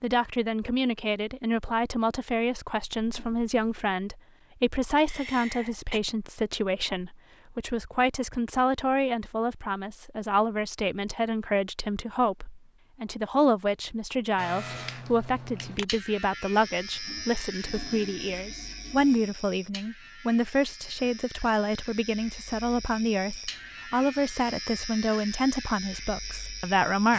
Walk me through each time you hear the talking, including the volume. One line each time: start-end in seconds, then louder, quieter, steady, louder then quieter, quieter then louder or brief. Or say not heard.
0.0-27.1 steady.